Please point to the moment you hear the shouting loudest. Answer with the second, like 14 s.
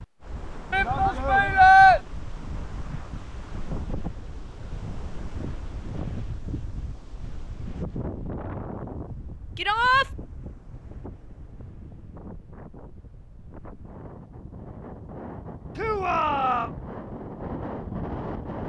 2 s.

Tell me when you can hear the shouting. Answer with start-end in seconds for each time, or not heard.
0.7-2.0, 9.6-10.1, 15.8-16.7.